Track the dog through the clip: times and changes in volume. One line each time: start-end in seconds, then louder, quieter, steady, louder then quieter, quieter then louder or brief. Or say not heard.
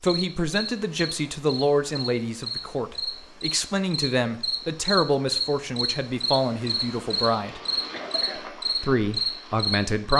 not heard.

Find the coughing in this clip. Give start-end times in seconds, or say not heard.
7.9-8.4.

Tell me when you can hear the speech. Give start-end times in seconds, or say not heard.
0.0-7.6, 8.8-10.1.